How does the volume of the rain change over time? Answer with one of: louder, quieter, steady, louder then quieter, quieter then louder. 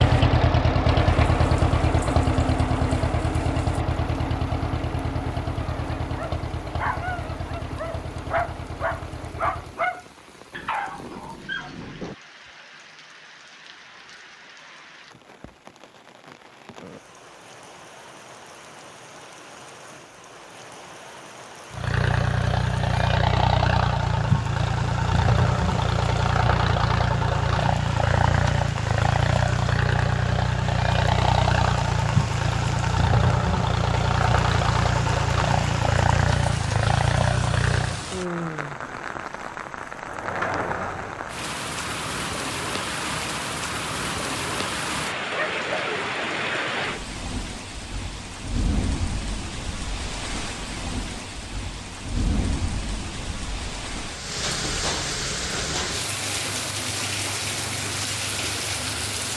louder.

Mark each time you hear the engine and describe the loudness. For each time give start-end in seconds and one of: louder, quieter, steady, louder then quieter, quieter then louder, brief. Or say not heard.
0.0-9.8 quieter
21.7-38.0 steady.